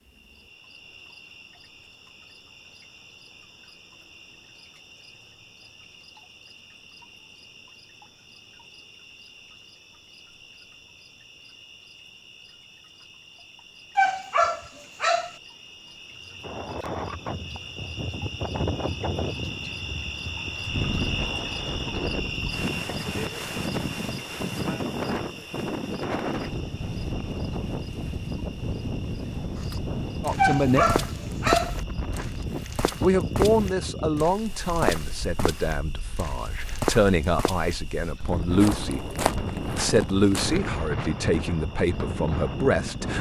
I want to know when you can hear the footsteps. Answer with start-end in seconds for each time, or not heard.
29.6-40.6.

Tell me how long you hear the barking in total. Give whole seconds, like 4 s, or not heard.
3 s.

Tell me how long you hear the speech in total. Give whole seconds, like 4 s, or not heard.
10 s.